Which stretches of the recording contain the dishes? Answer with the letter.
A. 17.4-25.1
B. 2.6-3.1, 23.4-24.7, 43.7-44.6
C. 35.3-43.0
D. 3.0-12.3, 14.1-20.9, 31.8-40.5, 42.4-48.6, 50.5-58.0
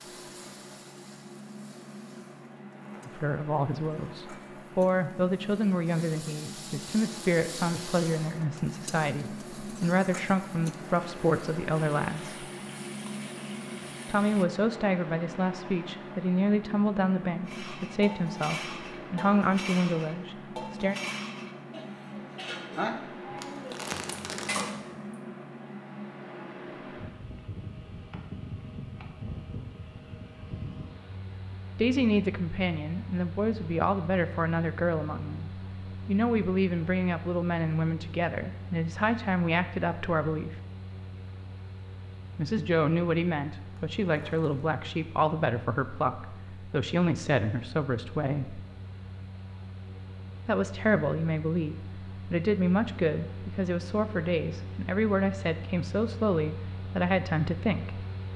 A.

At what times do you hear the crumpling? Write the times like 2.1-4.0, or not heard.
2.6-3.1, 23.4-24.7, 43.7-44.6.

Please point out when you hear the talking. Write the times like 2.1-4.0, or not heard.
3.0-12.3, 14.1-20.9, 31.8-40.5, 42.4-48.6, 50.5-58.0.